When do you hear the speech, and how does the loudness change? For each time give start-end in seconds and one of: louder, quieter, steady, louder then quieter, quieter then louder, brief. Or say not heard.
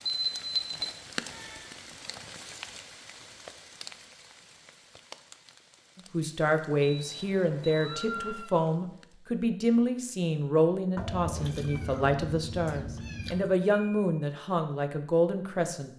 6.0-15.9 steady.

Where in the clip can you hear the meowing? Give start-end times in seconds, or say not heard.
0.8-1.7, 7.7-8.7, 10.9-13.5.